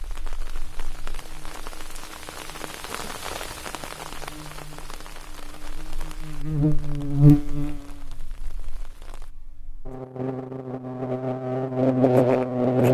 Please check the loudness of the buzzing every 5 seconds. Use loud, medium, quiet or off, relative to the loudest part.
quiet, loud, loud.